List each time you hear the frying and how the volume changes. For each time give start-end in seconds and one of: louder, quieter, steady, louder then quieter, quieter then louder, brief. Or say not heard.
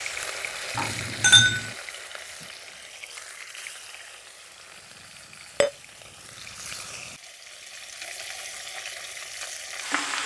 0.0-10.2 quieter then louder.